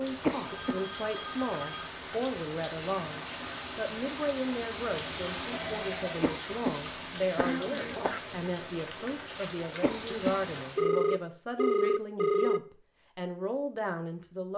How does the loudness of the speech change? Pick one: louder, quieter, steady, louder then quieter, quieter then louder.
steady.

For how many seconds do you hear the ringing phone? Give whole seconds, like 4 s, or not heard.
4 s.